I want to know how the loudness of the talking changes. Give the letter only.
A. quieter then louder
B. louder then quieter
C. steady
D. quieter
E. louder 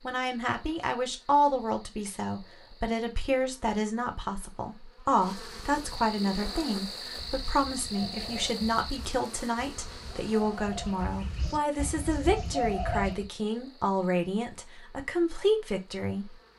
C.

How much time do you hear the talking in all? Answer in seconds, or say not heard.
16 s.